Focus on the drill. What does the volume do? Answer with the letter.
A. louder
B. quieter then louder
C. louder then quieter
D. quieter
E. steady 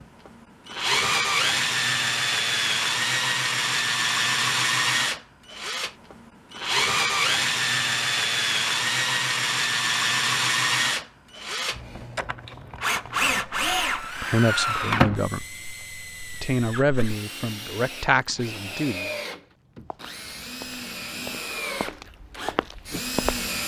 D.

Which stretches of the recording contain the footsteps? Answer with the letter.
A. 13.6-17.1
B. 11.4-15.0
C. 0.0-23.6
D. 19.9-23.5
D.